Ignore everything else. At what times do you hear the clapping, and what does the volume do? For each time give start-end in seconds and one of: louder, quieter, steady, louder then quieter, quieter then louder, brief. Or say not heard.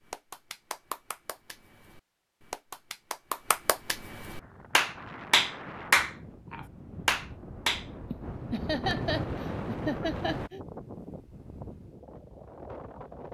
0.1-7.8 louder then quieter.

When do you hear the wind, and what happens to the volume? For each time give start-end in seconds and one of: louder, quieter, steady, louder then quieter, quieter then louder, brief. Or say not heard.
4.4-13.2 louder then quieter.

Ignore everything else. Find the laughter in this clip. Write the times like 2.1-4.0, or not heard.
8.1-10.6.